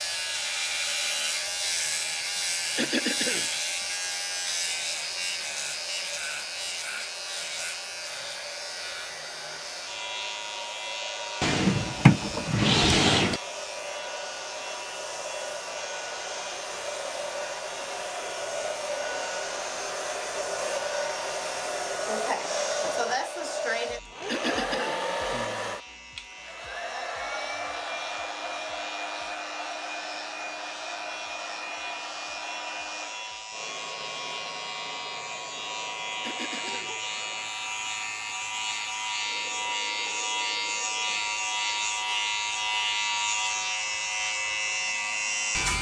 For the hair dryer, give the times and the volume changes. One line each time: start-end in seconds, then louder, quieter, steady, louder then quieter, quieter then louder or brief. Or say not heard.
0.0-45.6 louder then quieter.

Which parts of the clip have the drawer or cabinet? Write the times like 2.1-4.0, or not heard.
11.4-13.4.